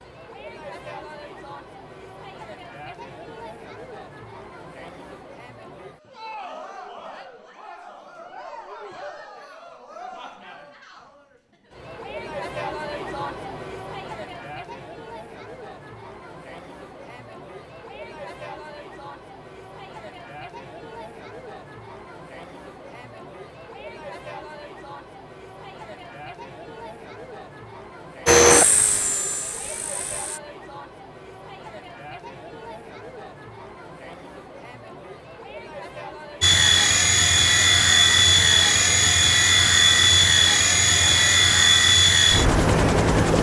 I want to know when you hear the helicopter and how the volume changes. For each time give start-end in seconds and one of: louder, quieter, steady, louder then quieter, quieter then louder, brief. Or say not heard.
28.2-30.4 brief
36.4-43.3 steady.